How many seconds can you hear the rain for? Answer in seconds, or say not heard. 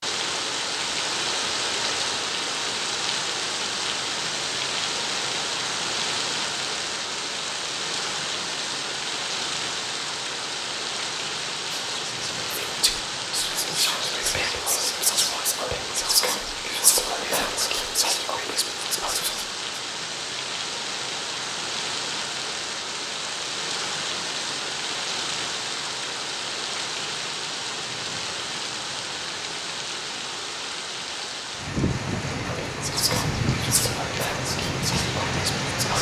36 s.